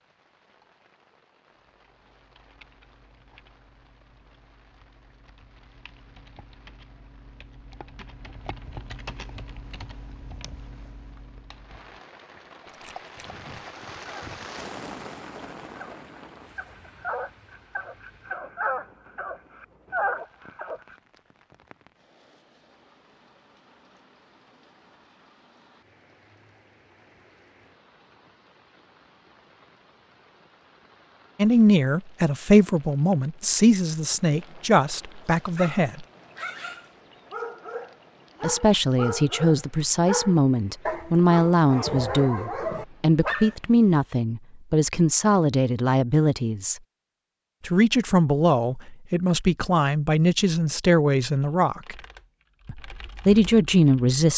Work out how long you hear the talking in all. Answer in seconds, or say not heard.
19 s.